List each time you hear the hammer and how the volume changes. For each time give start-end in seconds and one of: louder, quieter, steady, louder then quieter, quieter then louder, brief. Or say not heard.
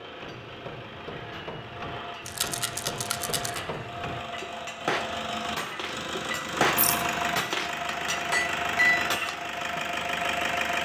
0.1-9.4 louder.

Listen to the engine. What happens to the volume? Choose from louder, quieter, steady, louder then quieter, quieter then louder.
louder.